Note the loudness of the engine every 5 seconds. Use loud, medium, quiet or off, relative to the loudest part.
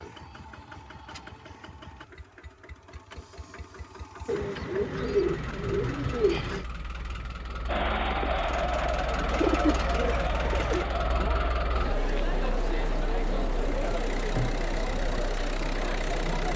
medium, loud, loud, loud.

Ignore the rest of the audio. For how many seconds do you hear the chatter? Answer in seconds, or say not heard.
9 s.